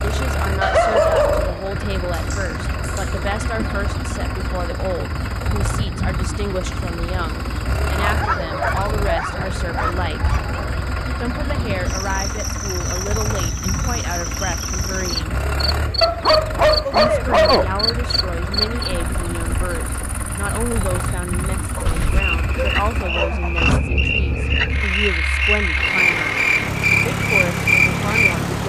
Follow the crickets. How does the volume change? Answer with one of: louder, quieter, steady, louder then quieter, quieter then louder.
louder.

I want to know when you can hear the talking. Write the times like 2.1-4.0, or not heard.
0.0-10.3, 11.2-15.4, 16.9-26.4, 27.1-28.4.